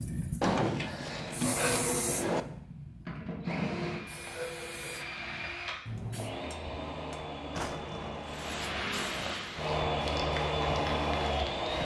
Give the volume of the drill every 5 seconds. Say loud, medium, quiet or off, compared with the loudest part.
medium, medium, loud.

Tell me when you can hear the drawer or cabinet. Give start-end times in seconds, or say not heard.
0.4-2.5, 7.5-8.3.